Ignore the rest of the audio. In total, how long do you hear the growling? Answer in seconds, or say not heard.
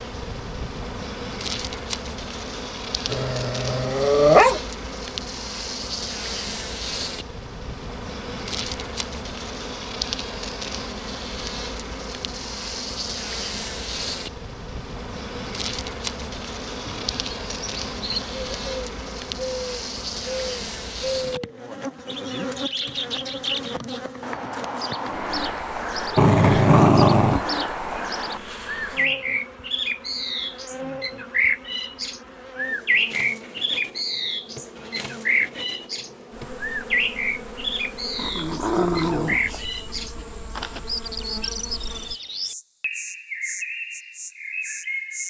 4 s.